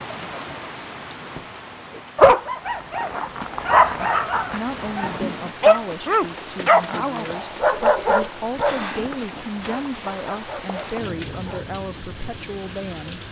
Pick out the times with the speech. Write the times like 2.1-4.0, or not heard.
4.5-13.2.